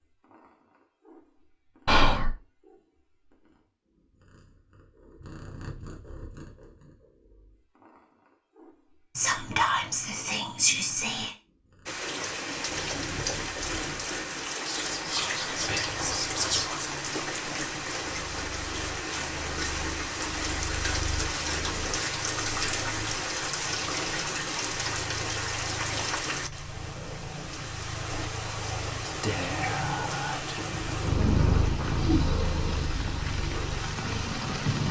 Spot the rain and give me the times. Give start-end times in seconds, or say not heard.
11.8-34.8.